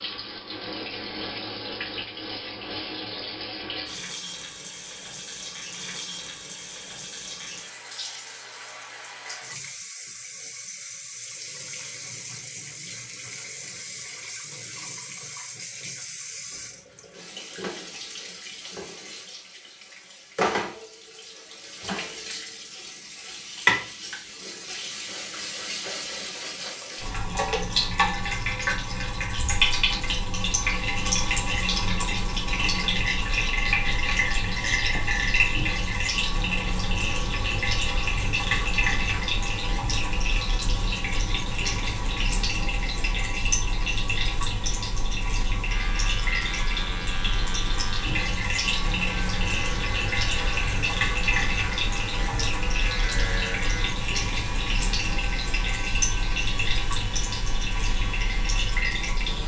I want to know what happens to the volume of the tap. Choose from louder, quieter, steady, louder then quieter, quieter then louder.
louder.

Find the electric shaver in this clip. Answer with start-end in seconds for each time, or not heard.
45.6-59.4.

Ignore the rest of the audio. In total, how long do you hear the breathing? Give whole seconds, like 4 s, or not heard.
not heard.